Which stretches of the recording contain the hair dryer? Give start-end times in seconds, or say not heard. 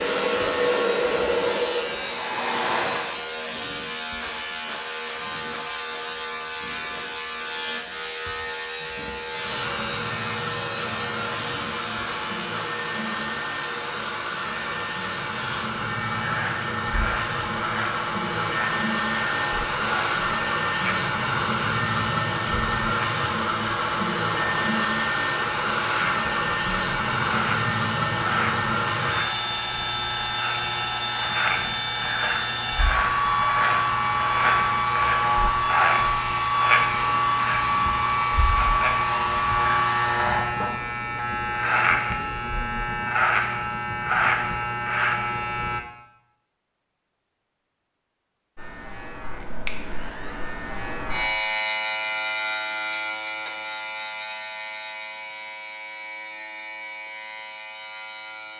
0.0-3.1, 9.2-40.3.